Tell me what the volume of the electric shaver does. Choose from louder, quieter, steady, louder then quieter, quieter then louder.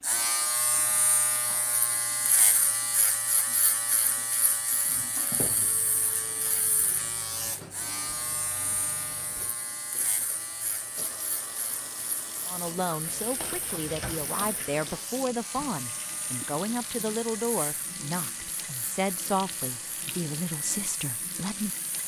quieter.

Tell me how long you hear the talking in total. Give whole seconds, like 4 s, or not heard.
9 s.